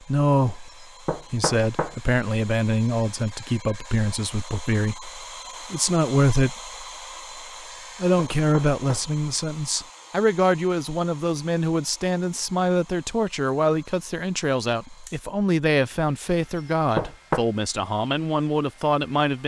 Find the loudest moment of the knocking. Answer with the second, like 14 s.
17 s.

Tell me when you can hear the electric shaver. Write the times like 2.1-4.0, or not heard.
not heard.